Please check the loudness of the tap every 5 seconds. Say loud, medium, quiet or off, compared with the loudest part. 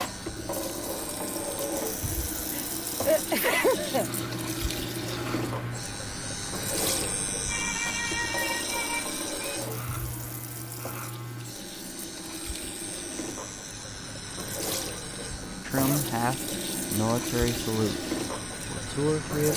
loud, loud, medium, loud.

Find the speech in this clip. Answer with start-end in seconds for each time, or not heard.
15.7-18.0, 18.7-19.5.